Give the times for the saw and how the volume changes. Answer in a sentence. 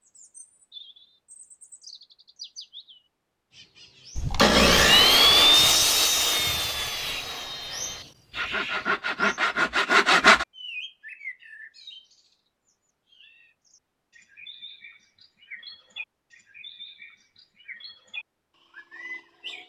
You can hear the saw from 4.2 to 10.4 s, getting quieter then louder.